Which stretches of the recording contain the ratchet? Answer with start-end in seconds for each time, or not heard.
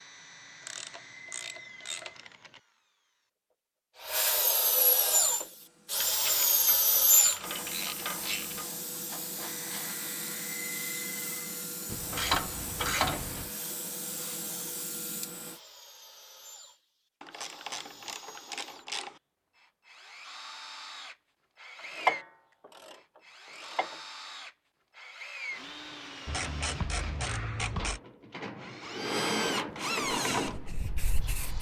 0.7-2.6, 6.0-8.7, 11.8-13.5, 17.2-19.1, 21.9-23.9, 26.2-28.0.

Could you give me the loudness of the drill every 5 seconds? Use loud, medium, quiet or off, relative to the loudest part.
medium, loud, quiet, quiet, quiet, medium, medium.